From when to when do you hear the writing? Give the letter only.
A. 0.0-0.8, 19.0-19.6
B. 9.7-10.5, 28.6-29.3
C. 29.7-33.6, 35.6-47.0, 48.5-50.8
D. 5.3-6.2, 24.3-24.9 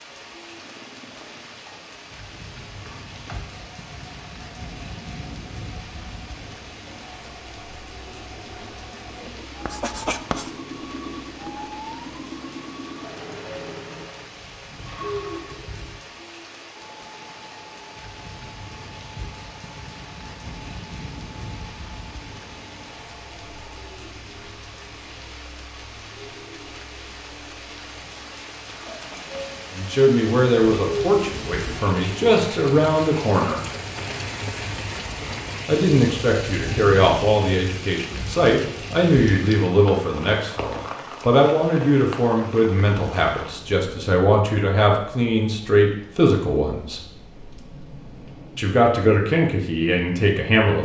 B.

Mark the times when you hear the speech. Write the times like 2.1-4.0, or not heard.
29.7-33.6, 35.6-47.0, 48.5-50.8.